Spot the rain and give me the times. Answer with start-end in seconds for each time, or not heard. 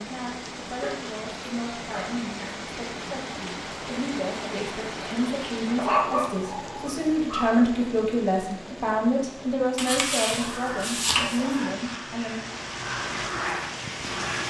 0.0-14.4.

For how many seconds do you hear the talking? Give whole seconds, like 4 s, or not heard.
12 s.